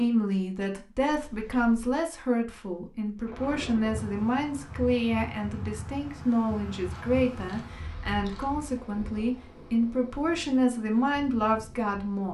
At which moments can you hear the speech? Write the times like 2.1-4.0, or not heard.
0.0-12.3.